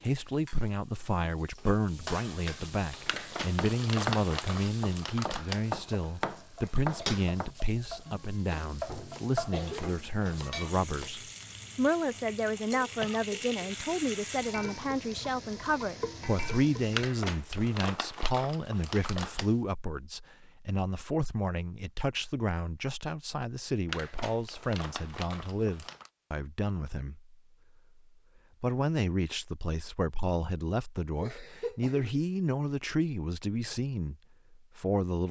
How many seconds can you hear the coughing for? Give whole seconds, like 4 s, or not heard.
3 s.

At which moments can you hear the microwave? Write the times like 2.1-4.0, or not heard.
not heard.